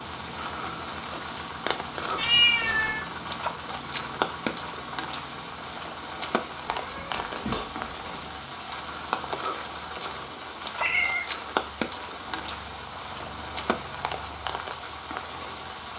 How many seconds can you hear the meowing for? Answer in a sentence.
The meowing can be heard for 3 seconds in total.